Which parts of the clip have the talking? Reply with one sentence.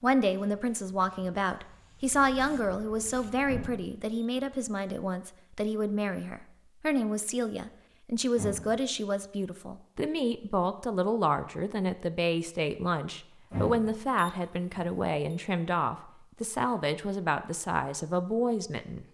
The talking can be heard from 0.0 to 19.0 s.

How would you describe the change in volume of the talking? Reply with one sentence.
The volume of the talking stays about the same.